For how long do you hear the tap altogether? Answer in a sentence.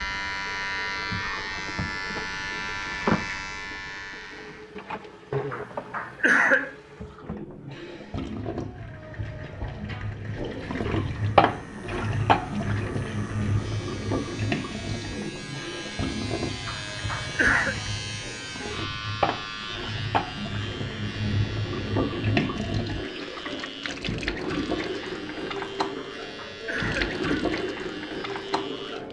The tap can be heard for 29 seconds in total.